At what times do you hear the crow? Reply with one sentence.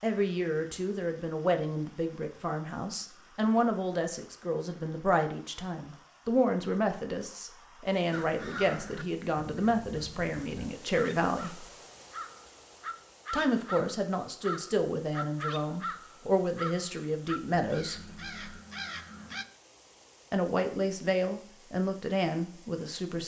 You can hear the crow from 8.1 to 19.4 s.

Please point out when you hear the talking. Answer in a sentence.
You can hear the talking from 0.0 to 11.7 s, from 13.3 to 17.9 s and from 20.3 to 23.2 s.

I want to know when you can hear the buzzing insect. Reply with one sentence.
You can't hear the buzzing insect here.